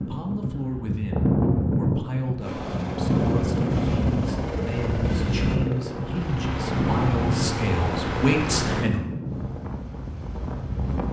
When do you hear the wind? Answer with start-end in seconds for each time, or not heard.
0.0-11.0.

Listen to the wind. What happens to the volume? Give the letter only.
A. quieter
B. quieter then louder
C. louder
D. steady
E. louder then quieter
A.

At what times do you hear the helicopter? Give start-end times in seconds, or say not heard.
2.4-8.9.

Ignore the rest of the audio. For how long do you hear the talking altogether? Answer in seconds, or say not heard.
9 s.